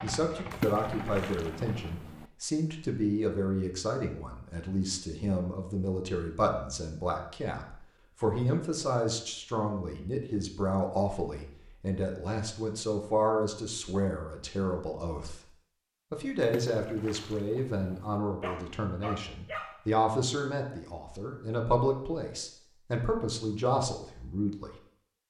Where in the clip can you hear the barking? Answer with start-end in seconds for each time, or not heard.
18.4-19.9.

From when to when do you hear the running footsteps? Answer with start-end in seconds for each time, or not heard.
not heard.